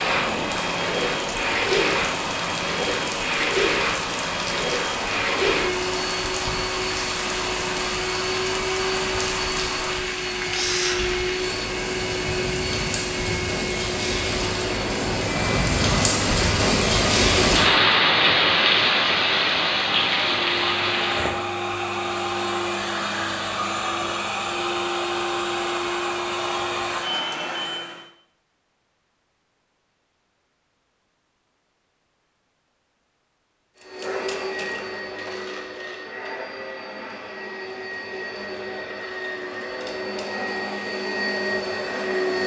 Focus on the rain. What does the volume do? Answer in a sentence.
The loudness of the rain goes up.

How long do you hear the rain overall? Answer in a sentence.
The rain can be heard for 21 seconds in total.